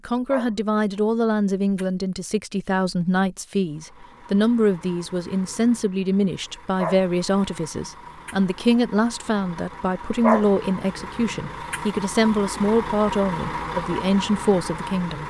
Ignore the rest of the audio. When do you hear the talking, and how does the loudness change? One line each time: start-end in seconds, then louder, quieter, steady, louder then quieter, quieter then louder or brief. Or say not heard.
0.1-15.2 steady.